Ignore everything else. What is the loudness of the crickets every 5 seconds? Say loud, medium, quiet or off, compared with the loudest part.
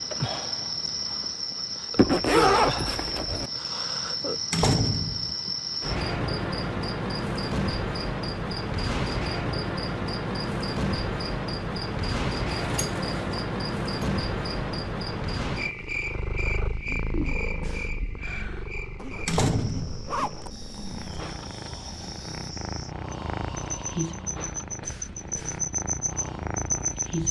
loud, loud, loud, medium, quiet, loud.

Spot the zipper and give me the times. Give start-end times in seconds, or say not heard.
1.9-3.5, 18.9-21.0.